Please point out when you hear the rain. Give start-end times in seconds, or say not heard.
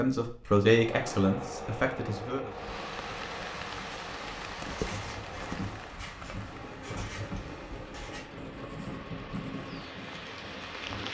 2.5-11.0.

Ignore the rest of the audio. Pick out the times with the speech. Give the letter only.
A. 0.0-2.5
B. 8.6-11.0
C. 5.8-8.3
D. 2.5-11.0
A.